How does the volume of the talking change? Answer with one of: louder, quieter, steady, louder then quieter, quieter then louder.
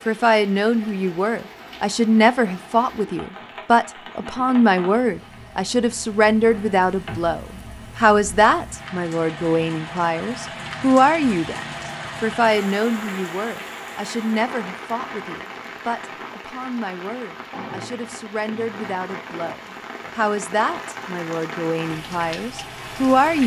quieter.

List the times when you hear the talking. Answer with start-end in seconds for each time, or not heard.
0.1-23.4.